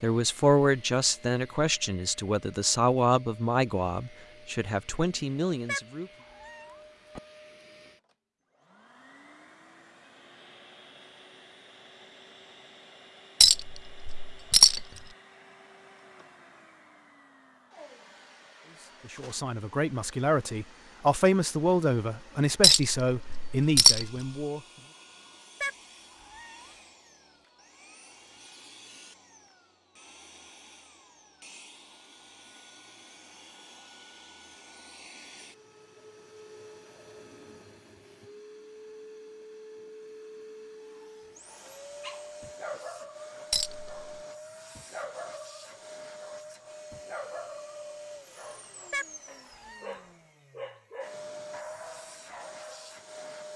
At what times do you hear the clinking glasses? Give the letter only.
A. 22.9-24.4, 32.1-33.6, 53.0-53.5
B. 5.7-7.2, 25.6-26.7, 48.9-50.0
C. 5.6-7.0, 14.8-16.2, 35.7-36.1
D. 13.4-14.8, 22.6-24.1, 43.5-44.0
D.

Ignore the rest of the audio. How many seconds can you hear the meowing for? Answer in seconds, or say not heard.
4 s.